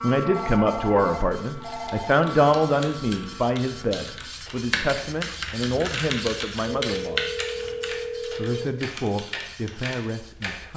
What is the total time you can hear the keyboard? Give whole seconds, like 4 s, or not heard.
9 s.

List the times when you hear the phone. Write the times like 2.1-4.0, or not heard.
0.2-2.2, 6.7-8.7.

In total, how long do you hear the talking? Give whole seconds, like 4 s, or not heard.
10 s.